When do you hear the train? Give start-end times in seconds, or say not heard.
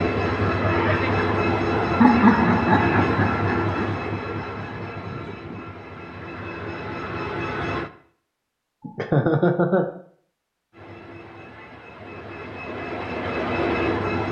0.0-7.9, 10.7-14.2.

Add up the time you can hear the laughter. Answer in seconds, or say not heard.
3 s.